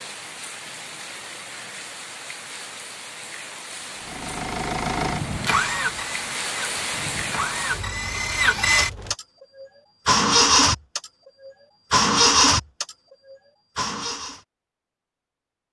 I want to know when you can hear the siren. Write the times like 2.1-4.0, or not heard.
not heard.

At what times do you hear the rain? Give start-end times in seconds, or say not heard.
0.0-9.2.